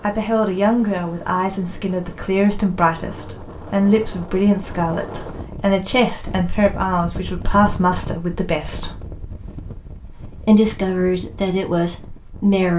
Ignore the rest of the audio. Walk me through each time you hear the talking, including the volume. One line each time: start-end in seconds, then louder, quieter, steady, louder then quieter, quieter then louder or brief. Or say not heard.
0.0-8.9 steady
10.4-12.7 brief.